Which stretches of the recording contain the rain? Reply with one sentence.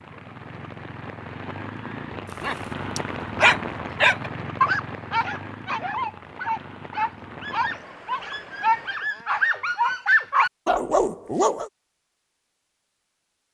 You can hear the rain from 0.0 to 9.1 s.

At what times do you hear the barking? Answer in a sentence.
The barking can be heard from 2.4 to 11.7 s.